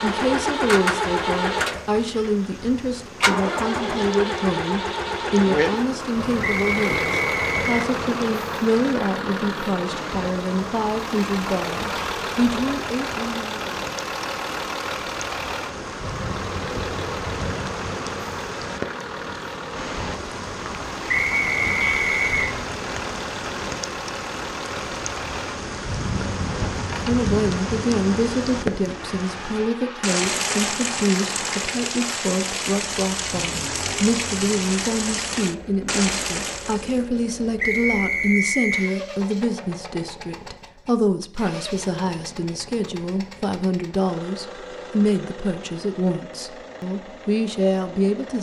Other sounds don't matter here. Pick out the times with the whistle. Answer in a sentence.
You can hear the whistle from 6.4 to 7.8 s, from 21.1 to 22.5 s and from 37.5 to 38.9 s.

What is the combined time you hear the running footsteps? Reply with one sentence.
You can't hear the running footsteps here.